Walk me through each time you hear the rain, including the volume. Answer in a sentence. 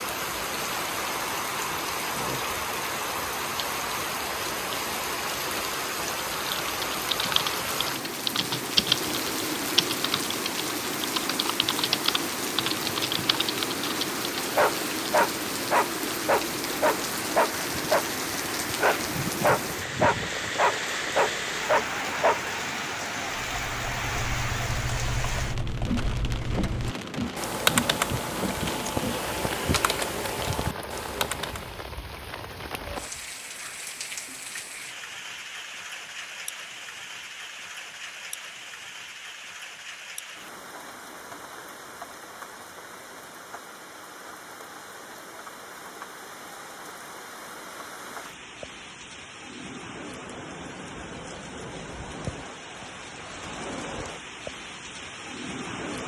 You can hear the rain from 0.0 to 56.0 s, getting quieter.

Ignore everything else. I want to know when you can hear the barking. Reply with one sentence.
The barking can be heard from 14.3 to 22.5 s.